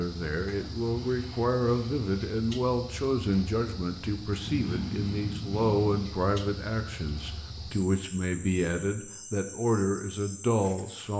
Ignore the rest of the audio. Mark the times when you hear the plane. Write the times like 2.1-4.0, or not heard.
4.4-6.0.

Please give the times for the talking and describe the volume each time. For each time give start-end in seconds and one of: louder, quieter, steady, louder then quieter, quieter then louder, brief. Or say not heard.
0.0-11.1 steady.